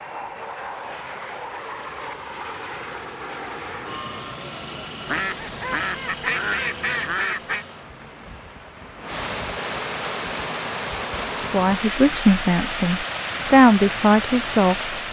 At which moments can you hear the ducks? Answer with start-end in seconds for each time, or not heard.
5.0-7.7.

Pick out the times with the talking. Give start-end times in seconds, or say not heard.
11.3-14.9.